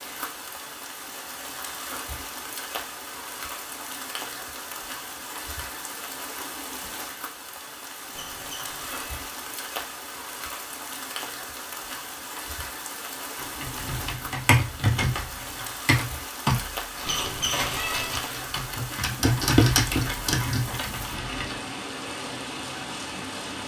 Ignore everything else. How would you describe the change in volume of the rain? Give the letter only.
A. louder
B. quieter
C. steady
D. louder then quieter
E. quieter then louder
C.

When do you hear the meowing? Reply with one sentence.
The meowing can be heard from 8.1 to 9.1 s and from 17.1 to 18.3 s.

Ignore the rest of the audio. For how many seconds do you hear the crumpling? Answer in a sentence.
The crumpling can be heard for 2 seconds in total.